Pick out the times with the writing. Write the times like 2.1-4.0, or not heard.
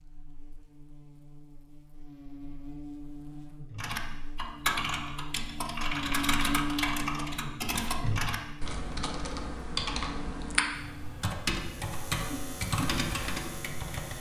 not heard.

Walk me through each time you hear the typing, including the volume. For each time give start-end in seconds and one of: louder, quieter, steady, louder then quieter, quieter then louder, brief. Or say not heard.
3.7-14.1 steady.